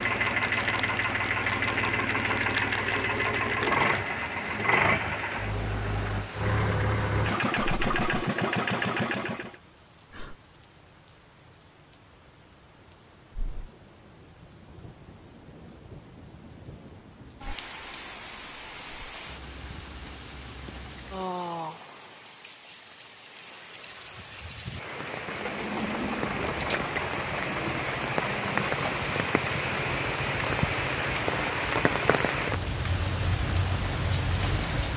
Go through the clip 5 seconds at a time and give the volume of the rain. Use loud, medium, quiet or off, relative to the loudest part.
medium, quiet, quiet, quiet, medium, loud, loud.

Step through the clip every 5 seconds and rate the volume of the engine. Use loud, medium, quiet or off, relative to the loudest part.
loud, loud, off, off, off, medium, quiet.